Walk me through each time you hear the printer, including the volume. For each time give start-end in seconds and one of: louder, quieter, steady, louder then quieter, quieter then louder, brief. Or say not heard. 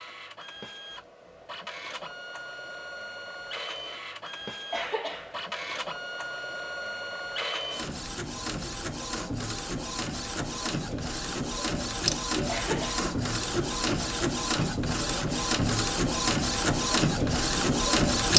0.0-18.3 louder.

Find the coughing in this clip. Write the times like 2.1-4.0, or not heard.
4.7-5.4, 12.4-13.1.